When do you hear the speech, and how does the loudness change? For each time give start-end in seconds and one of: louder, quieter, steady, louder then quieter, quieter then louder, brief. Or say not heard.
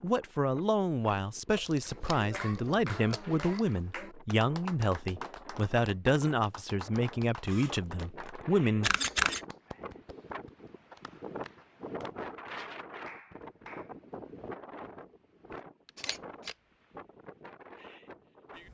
0.0-8.9 steady.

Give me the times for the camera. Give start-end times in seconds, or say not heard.
1.5-3.9, 7.5-9.4, 15.8-16.6.